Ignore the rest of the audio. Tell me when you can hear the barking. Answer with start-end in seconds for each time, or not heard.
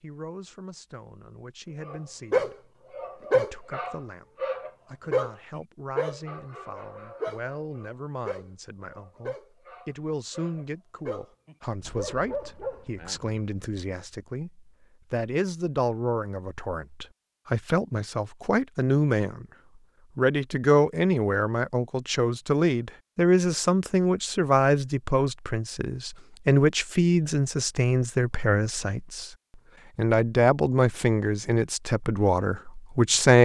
1.8-13.4.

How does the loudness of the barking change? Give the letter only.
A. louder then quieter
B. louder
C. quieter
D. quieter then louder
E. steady
D.